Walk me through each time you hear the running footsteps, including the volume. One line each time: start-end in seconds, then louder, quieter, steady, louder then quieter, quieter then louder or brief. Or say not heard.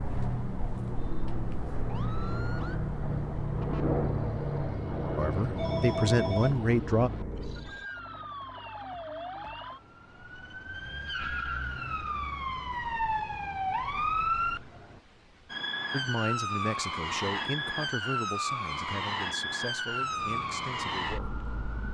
not heard.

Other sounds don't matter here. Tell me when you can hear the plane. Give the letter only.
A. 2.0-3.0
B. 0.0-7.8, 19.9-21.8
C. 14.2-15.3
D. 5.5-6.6
B.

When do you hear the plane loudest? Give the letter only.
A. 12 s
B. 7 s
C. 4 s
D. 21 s
C.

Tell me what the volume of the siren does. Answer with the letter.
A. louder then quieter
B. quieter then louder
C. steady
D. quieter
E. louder
E.